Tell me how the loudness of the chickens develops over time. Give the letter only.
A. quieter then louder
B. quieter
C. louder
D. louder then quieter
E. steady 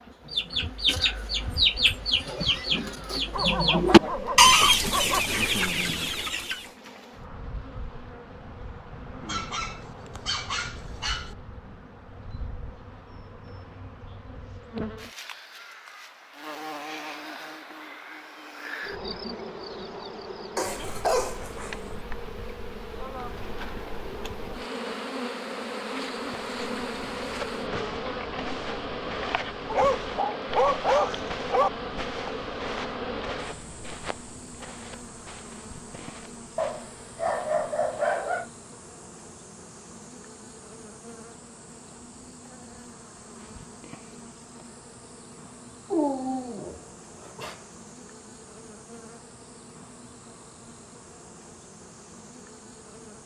D.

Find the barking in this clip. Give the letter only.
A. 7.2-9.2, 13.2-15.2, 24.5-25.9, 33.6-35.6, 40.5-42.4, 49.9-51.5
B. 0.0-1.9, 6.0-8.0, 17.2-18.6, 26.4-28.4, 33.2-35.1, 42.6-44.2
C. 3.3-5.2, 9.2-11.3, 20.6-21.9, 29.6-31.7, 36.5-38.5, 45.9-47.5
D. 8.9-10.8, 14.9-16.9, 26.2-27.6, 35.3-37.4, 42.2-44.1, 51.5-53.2
C.